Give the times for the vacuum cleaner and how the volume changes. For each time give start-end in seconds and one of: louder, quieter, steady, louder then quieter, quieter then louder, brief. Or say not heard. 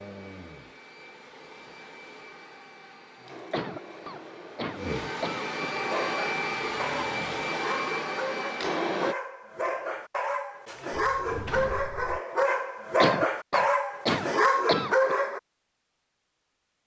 0.0-9.2 louder.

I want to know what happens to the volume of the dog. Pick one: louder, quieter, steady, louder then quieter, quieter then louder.
louder.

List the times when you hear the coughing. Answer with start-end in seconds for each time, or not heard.
3.5-5.5, 13.0-15.2.